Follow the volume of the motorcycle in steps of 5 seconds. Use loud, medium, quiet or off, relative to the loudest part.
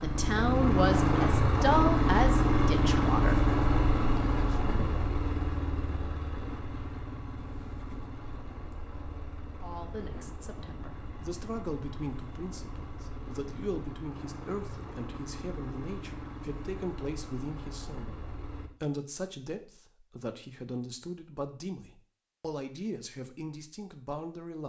loud, quiet, quiet, quiet, off.